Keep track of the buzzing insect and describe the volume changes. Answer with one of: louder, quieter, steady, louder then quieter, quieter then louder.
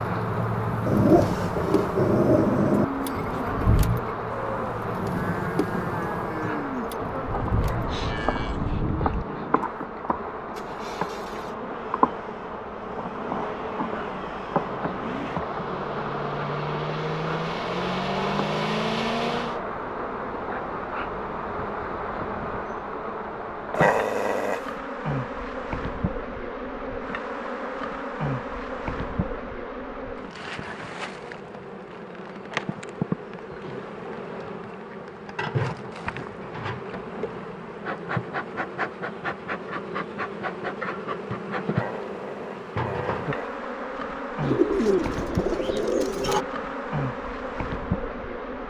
steady.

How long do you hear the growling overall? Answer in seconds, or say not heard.
5 s.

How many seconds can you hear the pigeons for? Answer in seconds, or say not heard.
2 s.